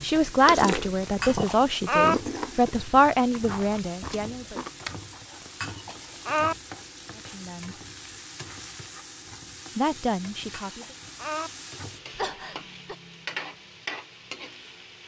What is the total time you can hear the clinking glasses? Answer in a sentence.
The clinking glasses can be heard for 3 seconds in total.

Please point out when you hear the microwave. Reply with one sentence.
You can't hear the microwave here.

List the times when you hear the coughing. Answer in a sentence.
The coughing can be heard from 12.2 to 12.9 s.